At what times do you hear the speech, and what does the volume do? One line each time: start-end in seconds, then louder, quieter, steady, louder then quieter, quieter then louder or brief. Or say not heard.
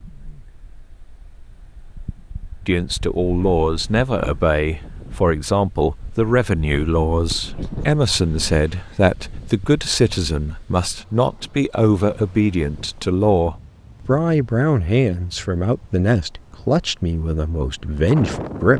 2.6-18.7 steady.